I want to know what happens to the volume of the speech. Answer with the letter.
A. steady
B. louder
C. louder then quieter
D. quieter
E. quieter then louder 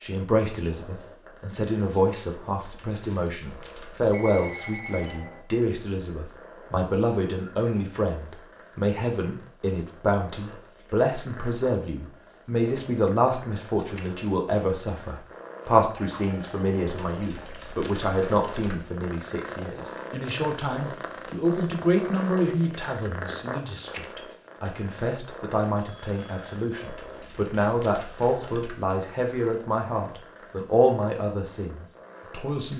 A.